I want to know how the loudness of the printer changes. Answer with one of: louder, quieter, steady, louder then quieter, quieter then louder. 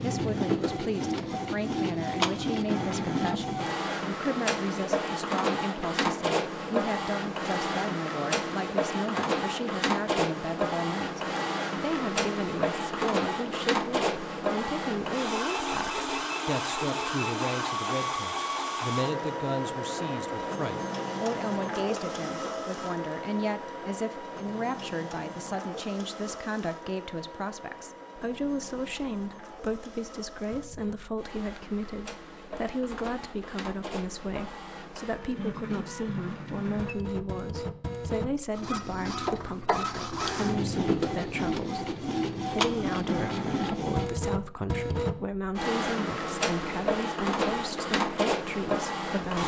quieter then louder.